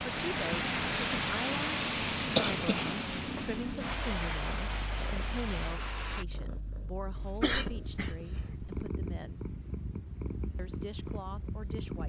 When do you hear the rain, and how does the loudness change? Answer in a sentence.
The rain can be heard from 0.0 to 6.2 s, getting quieter.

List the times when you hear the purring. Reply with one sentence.
You can hear the purring from 0.0 to 12.0 s.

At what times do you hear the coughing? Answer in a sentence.
The coughing can be heard from 2.4 to 3.0 s and from 7.2 to 8.7 s.